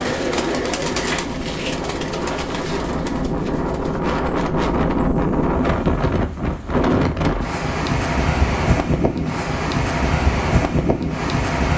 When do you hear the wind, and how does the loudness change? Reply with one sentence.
You can hear the wind from 0.0 to 11.7 s, getting louder.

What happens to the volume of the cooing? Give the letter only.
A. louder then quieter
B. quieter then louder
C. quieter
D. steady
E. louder
C.